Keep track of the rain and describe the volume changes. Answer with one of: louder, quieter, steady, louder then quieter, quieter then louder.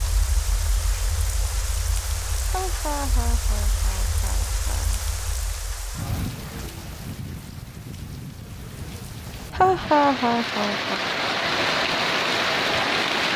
louder.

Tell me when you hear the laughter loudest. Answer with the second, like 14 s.
10 s.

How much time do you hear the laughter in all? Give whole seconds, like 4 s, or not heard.
4 s.